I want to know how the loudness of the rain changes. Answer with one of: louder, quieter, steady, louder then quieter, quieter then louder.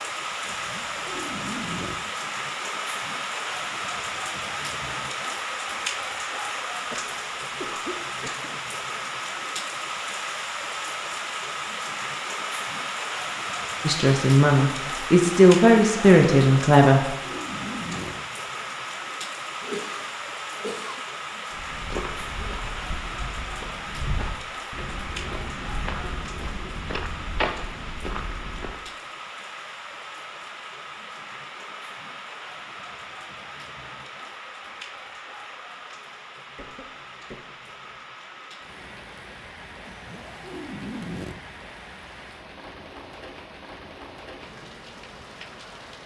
quieter.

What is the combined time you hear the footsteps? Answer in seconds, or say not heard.
7 s.